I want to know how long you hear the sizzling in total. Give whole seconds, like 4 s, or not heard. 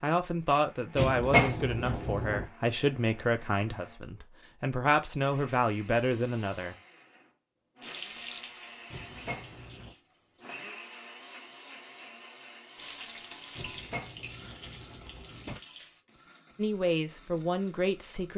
6 s.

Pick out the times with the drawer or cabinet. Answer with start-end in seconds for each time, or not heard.
0.9-2.5, 8.9-9.9, 13.6-15.6.